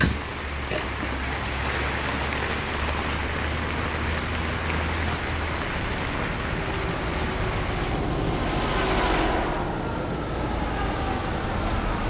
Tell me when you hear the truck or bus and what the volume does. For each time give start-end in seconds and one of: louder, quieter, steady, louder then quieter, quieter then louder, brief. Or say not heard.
0.1-12.0 louder.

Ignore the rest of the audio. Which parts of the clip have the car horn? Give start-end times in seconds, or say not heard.
not heard.